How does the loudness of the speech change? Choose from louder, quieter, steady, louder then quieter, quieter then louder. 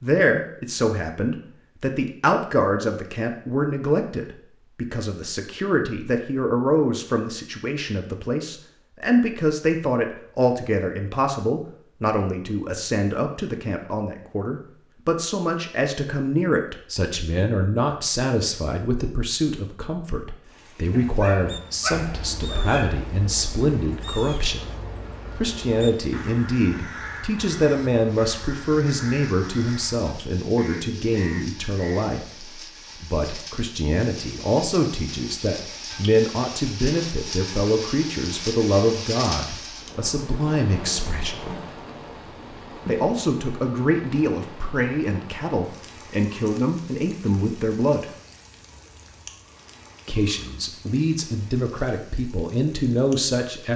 steady.